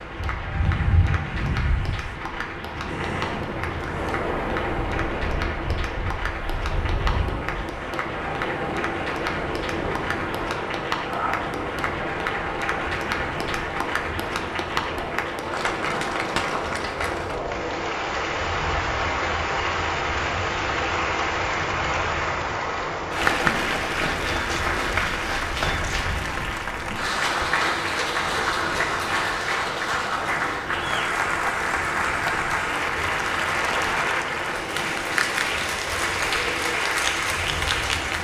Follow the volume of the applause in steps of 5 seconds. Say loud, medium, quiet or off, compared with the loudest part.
medium, medium, medium, loud, loud, loud, loud, loud.